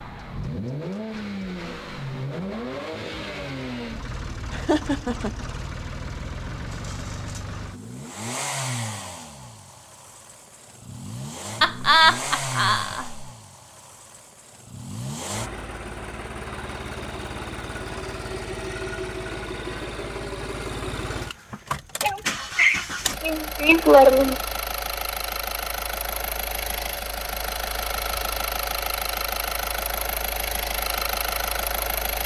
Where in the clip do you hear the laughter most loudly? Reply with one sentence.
The volume of the laughter peaks at 24 seconds.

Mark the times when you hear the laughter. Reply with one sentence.
The laughter can be heard from 4.5 to 5.3 s, from 11.6 to 13.2 s and from 22.0 to 24.4 s.